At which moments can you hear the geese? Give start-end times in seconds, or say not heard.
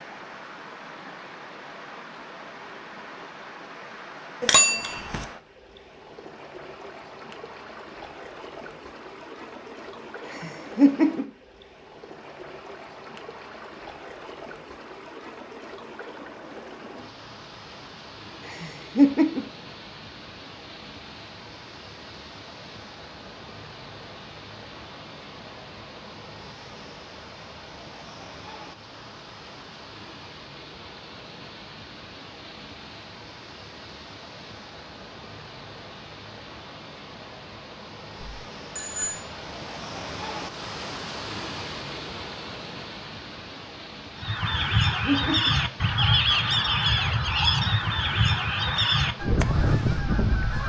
44.1-50.6.